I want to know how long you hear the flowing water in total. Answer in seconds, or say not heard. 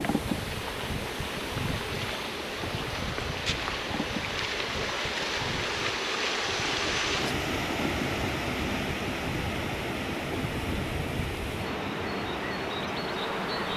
14 s.